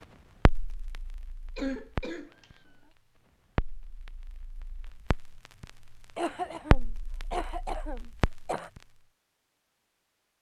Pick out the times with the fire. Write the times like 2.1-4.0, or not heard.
0.5-8.8.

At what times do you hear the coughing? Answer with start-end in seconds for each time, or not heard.
1.6-2.5, 6.2-8.7.